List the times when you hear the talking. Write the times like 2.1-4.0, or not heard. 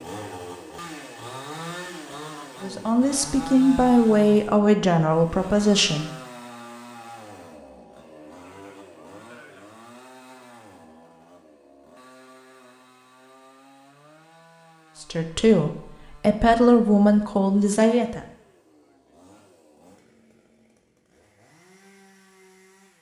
2.6-6.1, 15.0-18.2.